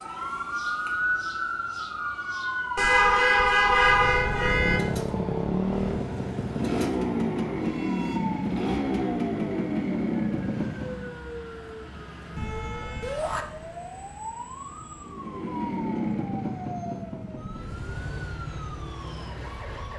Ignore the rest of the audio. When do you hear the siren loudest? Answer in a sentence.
The volume of the siren peaks at 1 second.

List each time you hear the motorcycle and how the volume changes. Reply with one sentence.
The motorcycle can be heard from 4.3 to 11.2 s, at a steady volume; and from 14.9 to 19.9 s, getting quieter.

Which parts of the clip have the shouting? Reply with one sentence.
The shouting can be heard from 13.0 to 13.4 s.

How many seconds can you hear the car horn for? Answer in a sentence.
The car horn can be heard for 3 seconds in total.